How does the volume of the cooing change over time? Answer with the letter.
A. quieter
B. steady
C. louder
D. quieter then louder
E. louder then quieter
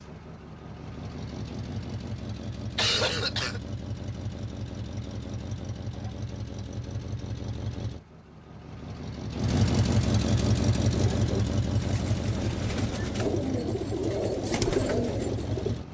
C.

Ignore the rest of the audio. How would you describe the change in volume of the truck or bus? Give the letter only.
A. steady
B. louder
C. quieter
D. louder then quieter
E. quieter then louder
D.